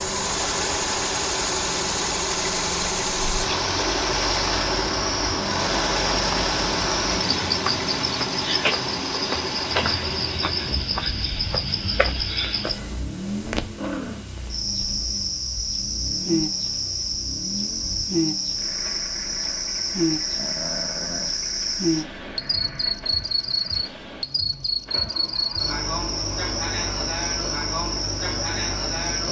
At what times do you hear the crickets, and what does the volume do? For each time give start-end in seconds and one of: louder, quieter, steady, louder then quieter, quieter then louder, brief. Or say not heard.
0.0-29.2 steady.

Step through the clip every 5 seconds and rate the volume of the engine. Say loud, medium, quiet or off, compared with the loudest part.
loud, loud, medium, quiet, quiet, quiet.